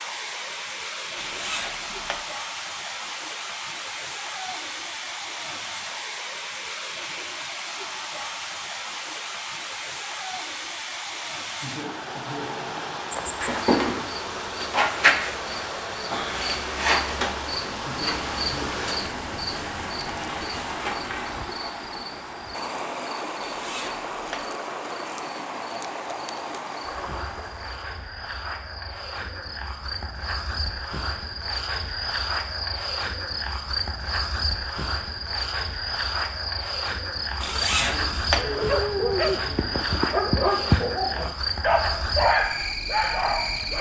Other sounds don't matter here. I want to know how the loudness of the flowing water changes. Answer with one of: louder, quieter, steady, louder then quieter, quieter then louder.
steady.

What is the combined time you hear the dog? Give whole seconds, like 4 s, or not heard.
5 s.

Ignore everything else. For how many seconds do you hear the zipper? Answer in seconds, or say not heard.
3 s.